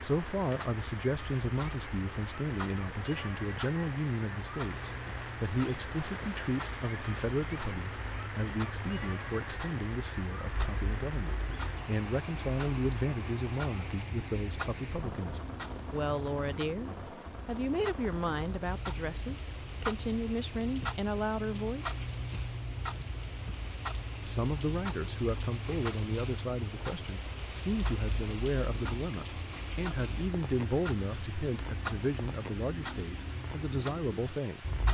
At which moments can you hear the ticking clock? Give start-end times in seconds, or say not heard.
0.0-34.9.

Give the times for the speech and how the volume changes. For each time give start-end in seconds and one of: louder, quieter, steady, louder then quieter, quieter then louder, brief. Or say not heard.
0.0-21.9 steady
24.2-34.6 steady.